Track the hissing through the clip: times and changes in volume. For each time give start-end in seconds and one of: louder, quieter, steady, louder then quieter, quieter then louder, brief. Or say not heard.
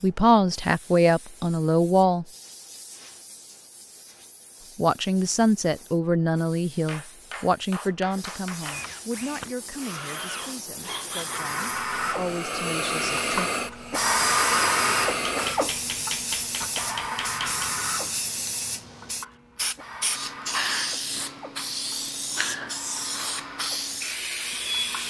0.0-25.0 louder.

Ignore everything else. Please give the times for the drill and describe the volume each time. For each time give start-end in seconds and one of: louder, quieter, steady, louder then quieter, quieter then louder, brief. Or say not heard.
8.6-25.0 louder then quieter.